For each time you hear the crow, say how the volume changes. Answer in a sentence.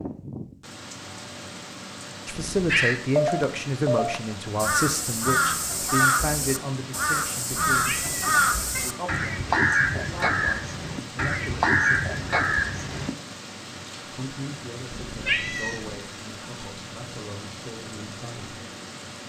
You can hear the crow from 2.7 to 13.1 s, at a steady volume.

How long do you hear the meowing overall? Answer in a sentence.
The meowing can be heard for 3 seconds in total.